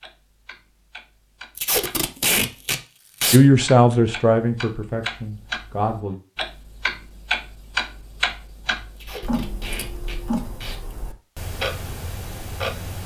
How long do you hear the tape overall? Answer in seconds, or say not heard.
4 s.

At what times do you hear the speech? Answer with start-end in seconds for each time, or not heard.
3.3-6.2.